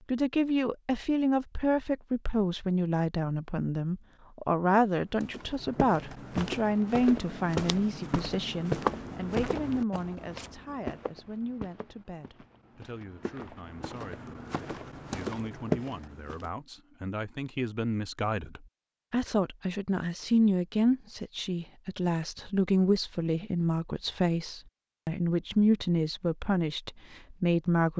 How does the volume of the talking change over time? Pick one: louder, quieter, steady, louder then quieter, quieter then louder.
quieter then louder.